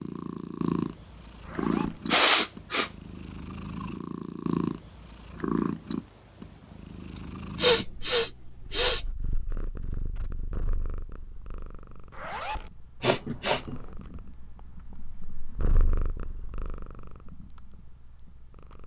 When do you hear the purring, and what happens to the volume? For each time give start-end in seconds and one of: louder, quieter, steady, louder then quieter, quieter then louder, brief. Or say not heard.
0.0-18.8 quieter then louder.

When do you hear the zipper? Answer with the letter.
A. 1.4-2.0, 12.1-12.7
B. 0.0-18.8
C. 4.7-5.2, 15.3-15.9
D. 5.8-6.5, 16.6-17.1
A.